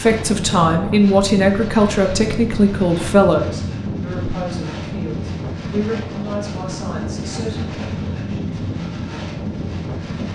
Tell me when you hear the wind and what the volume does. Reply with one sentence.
The wind can be heard from 0.0 to 10.3 s, at a steady volume.